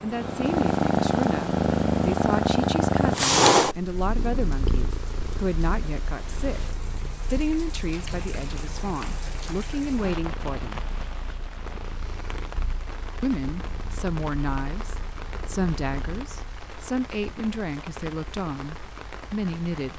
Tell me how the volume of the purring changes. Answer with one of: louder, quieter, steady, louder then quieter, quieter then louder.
quieter.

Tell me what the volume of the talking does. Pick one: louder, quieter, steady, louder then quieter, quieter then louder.
steady.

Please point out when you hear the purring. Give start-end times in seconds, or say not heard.
0.0-16.4.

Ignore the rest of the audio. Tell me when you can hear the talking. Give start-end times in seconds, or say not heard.
0.0-10.8, 13.2-19.9.